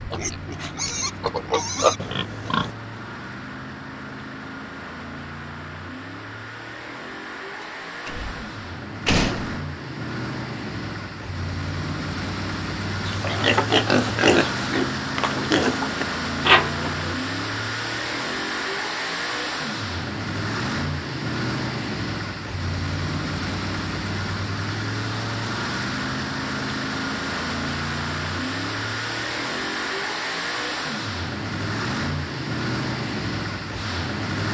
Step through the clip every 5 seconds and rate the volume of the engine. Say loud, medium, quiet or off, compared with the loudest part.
medium, medium, loud, loud, loud, loud, loud.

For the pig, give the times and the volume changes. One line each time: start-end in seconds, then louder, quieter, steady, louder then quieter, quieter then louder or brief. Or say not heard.
0.0-2.7 brief
13.1-17.1 quieter then louder.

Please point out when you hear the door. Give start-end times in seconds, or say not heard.
8.1-9.6.